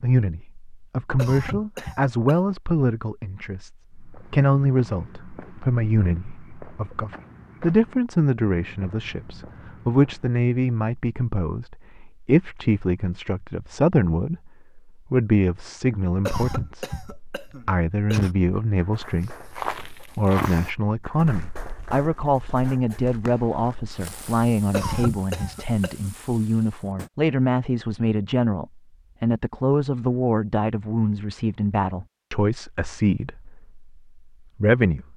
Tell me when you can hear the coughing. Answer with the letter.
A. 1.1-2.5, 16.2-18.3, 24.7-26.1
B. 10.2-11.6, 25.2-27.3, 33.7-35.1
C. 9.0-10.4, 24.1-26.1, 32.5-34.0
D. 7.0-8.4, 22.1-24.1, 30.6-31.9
A.